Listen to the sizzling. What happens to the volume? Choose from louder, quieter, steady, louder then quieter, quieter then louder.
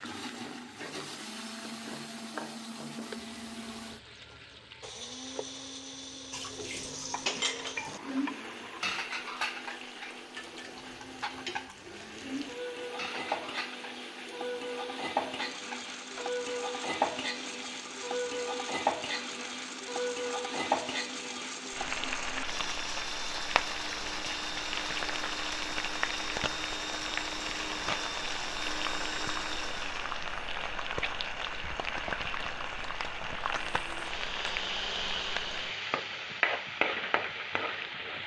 louder.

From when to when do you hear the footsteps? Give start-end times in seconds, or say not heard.
not heard.